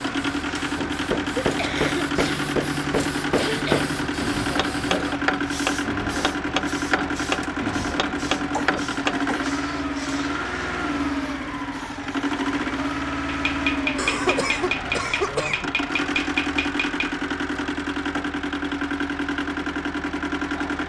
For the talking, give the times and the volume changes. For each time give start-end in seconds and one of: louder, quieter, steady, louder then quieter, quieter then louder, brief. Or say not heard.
not heard.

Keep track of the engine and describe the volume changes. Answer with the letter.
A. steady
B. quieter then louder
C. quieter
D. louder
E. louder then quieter
A.